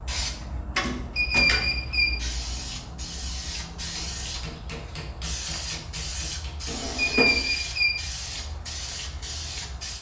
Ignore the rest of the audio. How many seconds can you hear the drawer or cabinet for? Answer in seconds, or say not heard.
2 s.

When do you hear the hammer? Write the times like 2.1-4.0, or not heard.
3.8-6.8.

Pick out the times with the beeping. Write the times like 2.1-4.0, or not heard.
1.1-2.1, 7.0-8.0.